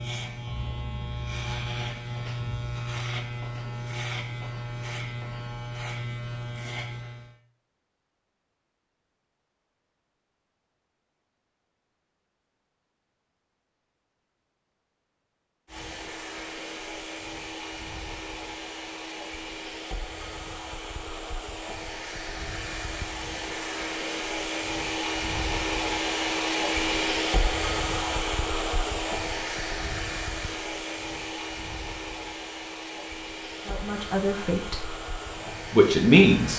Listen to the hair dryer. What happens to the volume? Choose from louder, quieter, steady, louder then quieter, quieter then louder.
louder then quieter.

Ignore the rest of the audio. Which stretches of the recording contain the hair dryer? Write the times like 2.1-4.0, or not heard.
15.7-36.5.